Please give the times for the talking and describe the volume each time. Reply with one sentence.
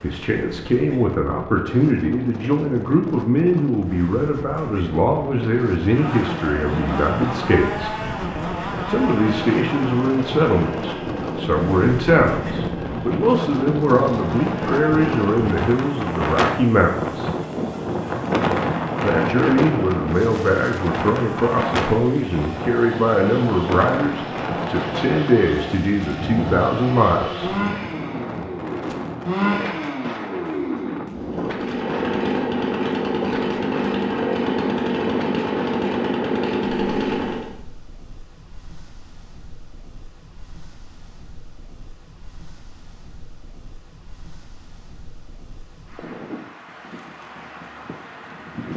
You can hear the talking from 0.0 to 8.0 s, at a steady volume; from 8.8 to 17.3 s, at a steady volume; and from 19.0 to 27.6 s, at a steady volume.